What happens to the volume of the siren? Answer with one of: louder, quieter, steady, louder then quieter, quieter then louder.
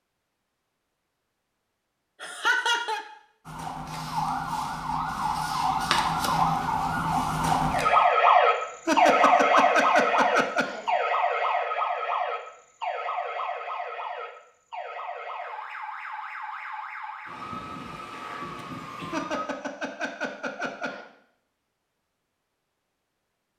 louder then quieter.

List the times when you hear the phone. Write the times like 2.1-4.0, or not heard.
not heard.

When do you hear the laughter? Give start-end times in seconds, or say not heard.
2.2-3.0, 8.8-10.9, 19.1-21.1.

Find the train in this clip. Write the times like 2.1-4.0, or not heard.
not heard.